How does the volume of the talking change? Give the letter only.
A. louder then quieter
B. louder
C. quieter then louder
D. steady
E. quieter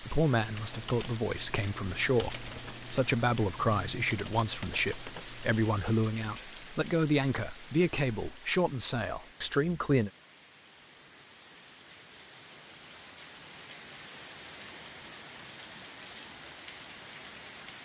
D.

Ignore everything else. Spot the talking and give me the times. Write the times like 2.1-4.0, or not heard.
0.0-10.1.